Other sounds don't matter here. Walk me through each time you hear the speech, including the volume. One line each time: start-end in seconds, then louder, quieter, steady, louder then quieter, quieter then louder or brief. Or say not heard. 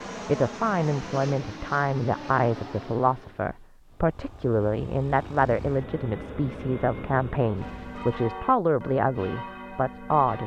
0.2-10.4 steady.